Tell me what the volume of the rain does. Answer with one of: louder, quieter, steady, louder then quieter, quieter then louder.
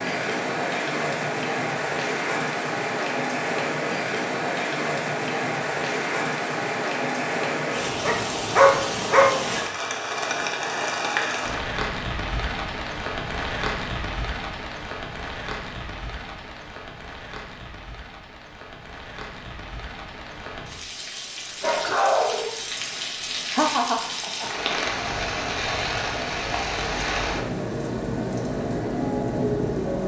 quieter then louder.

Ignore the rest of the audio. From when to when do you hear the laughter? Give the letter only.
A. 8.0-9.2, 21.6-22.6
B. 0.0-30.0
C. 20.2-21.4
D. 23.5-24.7
D.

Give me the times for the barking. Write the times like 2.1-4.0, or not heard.
8.0-9.2, 21.6-22.6.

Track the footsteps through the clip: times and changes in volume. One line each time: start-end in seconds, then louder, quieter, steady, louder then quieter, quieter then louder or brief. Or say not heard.
not heard.